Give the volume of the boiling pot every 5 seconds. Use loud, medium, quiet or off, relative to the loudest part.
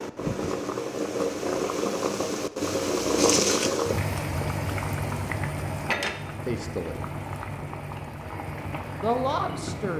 loud, medium.